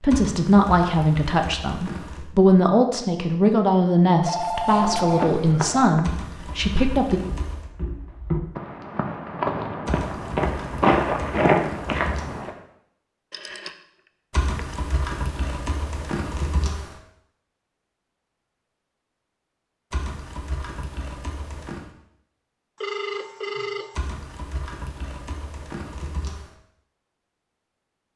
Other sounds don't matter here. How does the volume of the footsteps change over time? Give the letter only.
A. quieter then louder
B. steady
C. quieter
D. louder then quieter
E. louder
A.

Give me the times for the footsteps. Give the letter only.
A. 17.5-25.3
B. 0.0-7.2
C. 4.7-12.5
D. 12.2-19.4
C.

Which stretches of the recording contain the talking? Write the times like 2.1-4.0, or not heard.
0.0-7.2.